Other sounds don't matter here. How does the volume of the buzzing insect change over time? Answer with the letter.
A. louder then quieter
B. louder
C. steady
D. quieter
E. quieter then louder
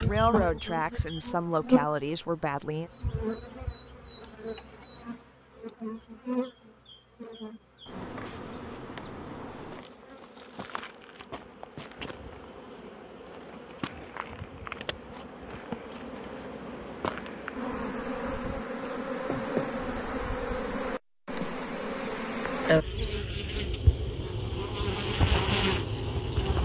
E.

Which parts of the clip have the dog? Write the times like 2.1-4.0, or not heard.
not heard.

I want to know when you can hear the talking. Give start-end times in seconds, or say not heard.
0.0-2.9.